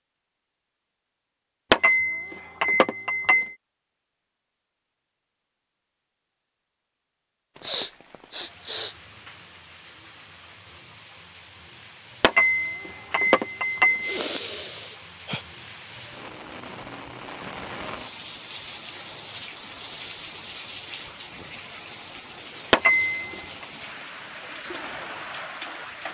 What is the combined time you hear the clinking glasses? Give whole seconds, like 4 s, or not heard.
5 s.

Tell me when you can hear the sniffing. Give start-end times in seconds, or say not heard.
7.6-8.9, 14.0-15.4.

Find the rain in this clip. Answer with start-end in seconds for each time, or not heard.
7.5-26.0.